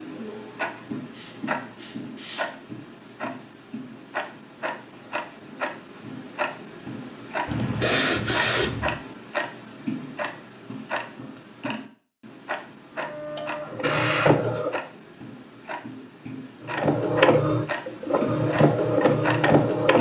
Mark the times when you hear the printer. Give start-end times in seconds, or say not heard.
12.9-14.8, 16.6-19.9.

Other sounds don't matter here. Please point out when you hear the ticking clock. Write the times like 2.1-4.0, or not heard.
0.0-19.9.